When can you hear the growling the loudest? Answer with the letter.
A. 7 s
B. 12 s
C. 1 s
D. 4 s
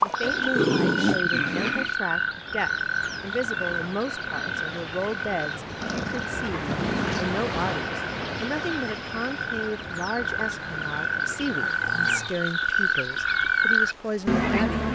C.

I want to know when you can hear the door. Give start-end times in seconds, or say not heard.
not heard.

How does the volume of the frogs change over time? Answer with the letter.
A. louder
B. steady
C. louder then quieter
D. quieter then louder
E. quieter
D.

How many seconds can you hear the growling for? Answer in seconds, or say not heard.
4 s.